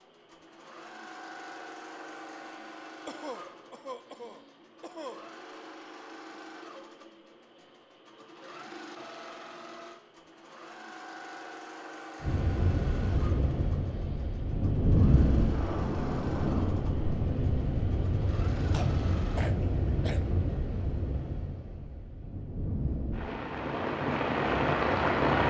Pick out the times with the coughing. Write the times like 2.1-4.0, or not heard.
3.0-5.2, 18.7-20.2.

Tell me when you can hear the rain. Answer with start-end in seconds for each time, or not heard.
12.2-25.4.